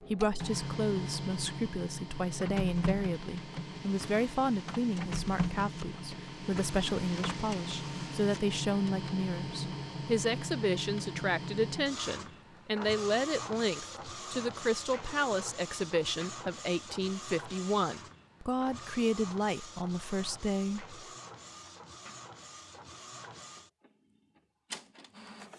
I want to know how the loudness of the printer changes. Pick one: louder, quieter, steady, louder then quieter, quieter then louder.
quieter.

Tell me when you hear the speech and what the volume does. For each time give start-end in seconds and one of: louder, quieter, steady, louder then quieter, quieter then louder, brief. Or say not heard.
0.1-20.9 steady.